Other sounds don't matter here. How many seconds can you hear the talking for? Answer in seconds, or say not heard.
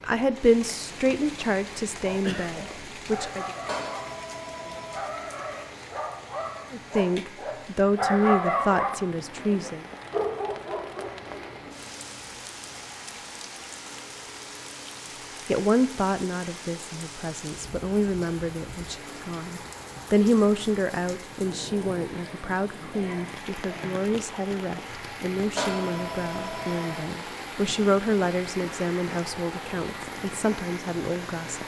23 s.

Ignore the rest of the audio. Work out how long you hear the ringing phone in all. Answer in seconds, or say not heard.
3 s.